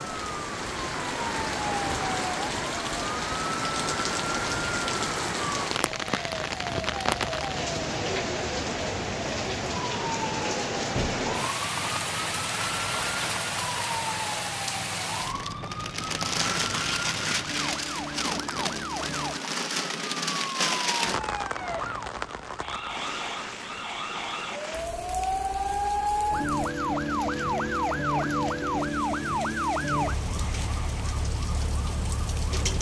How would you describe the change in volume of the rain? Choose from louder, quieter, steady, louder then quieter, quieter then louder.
quieter.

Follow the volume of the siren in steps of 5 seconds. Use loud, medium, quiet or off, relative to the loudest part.
medium, medium, medium, medium, medium, loud, medium.